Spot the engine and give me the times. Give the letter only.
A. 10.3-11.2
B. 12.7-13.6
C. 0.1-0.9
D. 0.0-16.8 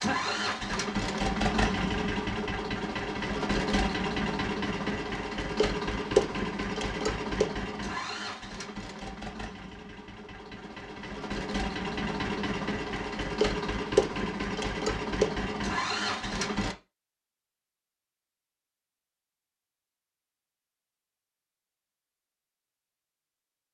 D.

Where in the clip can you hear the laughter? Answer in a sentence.
The laughter can be heard from 0.1 to 0.9 s.